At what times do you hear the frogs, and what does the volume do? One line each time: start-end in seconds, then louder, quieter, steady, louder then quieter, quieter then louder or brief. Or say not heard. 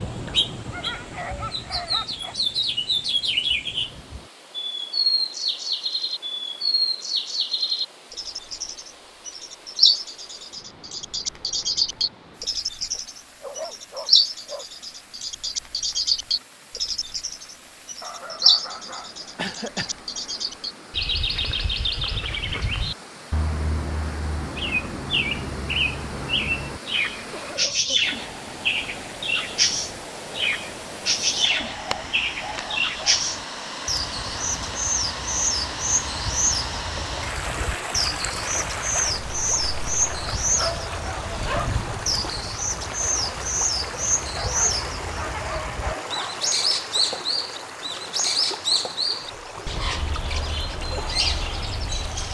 not heard.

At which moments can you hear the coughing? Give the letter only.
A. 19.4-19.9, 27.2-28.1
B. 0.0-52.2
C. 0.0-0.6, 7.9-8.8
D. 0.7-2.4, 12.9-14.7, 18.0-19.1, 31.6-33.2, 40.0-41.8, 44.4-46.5
A.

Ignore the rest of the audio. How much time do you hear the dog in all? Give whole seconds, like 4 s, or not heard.
10 s.